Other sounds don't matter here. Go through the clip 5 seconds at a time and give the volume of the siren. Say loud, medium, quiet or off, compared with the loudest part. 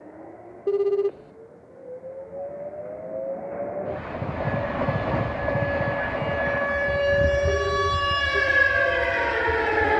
off, loud.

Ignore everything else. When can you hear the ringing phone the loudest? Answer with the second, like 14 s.
1 s.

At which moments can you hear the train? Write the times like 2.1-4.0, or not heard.
0.0-7.5.